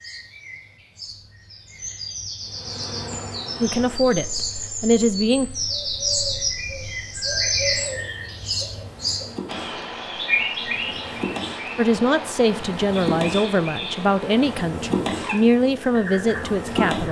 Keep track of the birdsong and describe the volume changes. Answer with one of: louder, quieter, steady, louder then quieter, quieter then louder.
louder then quieter.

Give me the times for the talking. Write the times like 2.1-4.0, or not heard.
3.6-5.5, 11.8-17.0.